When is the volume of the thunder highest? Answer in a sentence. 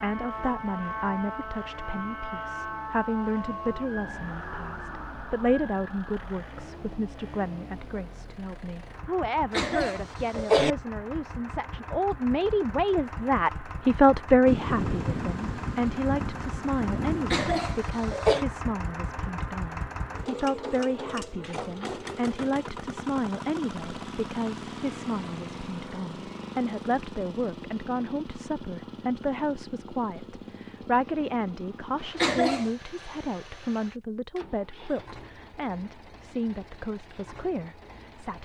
The volume of the thunder peaks at 15 seconds.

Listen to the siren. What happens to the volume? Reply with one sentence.
The loudness of the siren goes down.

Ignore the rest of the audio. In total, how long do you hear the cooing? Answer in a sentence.
You can't hear the cooing here.